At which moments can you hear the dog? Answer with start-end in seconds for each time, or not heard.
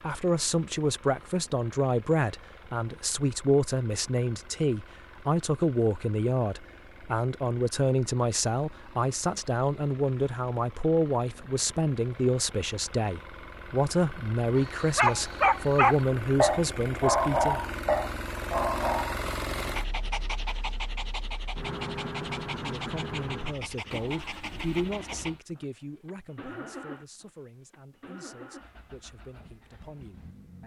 14.6-25.3.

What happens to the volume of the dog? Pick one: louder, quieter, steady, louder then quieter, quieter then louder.
quieter.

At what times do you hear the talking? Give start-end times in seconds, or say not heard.
0.0-17.6, 22.5-30.6.